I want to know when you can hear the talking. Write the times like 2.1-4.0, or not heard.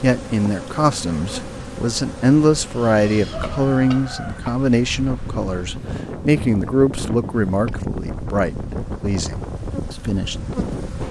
0.0-10.3.